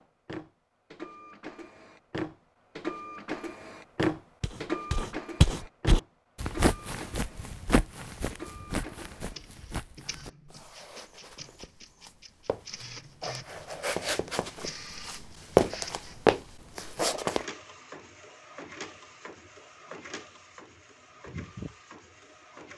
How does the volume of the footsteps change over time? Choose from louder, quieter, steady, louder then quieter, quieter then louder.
quieter then louder.